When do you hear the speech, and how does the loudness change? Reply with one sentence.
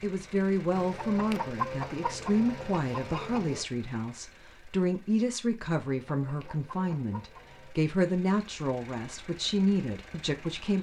The speech can be heard from 0.0 to 10.7 s, at a steady volume.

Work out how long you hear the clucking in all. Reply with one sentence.
The clucking can be heard for 5 seconds in total.